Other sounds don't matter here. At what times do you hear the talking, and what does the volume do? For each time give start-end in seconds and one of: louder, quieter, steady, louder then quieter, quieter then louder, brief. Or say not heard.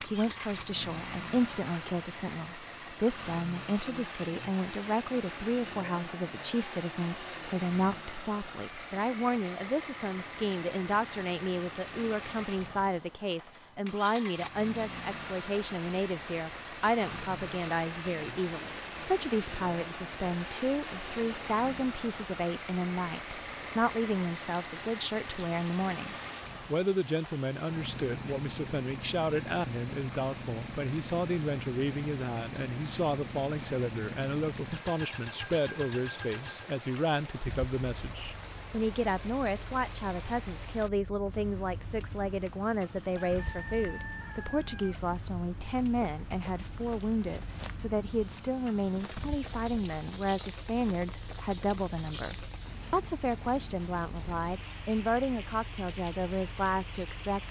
0.0-57.4 steady.